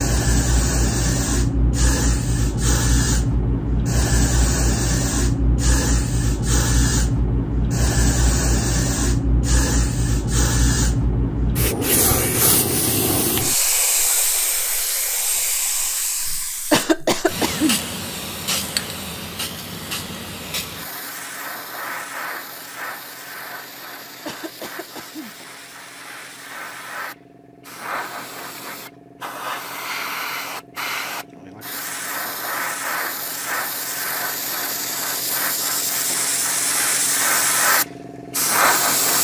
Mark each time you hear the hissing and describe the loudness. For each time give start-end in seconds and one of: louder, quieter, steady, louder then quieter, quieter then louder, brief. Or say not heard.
0.0-39.1 quieter then louder.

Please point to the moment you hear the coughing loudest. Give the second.
17 s.